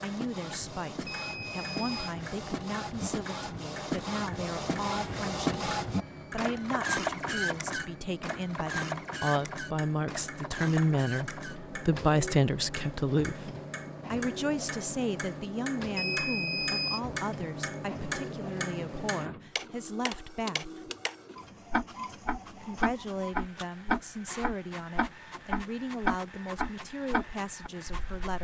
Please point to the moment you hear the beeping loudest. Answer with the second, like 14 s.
17 s.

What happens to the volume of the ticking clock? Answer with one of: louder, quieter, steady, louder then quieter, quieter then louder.
louder.